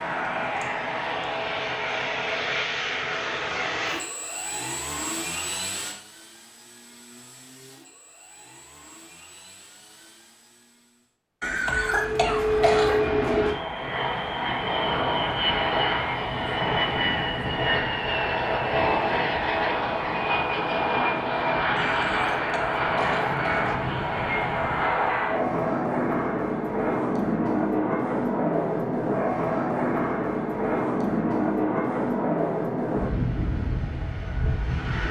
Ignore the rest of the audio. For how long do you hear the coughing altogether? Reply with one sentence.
You can hear the coughing for 4 seconds altogether.